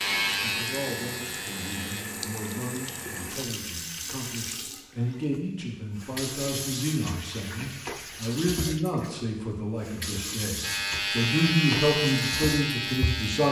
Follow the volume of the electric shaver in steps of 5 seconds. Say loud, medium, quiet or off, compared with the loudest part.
loud, off, loud.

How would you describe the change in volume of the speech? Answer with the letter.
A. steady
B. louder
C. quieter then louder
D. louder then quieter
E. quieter
B.